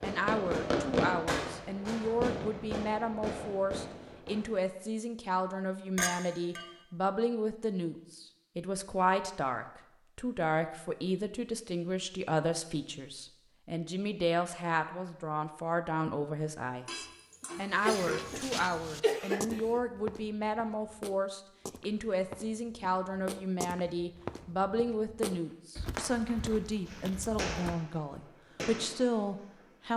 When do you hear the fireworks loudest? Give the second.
1 s.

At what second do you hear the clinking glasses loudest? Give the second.
6 s.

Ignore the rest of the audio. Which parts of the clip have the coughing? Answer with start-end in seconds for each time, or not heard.
17.4-19.8.